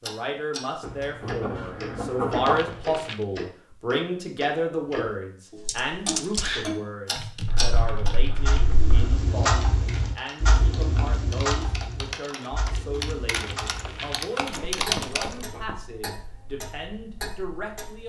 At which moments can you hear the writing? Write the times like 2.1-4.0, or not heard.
0.8-2.8, 7.5-9.2, 14.3-15.8.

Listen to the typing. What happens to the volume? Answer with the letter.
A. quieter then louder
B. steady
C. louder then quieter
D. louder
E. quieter
A.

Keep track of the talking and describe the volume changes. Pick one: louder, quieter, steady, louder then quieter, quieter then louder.
quieter.